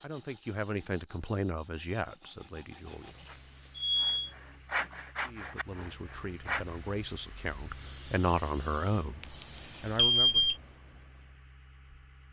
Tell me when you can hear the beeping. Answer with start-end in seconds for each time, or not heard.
3.2-4.3, 9.9-10.6.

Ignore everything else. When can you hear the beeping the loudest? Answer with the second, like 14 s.
10 s.